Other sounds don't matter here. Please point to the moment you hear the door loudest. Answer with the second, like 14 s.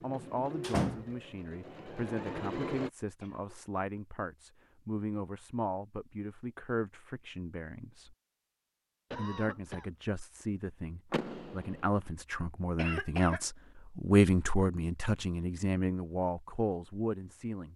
1 s.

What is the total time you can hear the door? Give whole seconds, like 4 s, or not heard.
2 s.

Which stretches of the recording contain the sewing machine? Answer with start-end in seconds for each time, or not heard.
0.0-2.9.